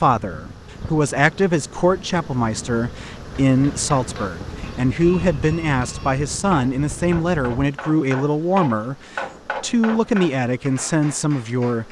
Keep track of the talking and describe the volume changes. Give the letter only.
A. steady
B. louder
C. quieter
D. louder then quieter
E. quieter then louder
A.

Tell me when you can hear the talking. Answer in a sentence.
You can hear the talking from 0.0 to 11.8 s.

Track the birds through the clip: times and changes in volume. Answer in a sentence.
You can't hear the birds here.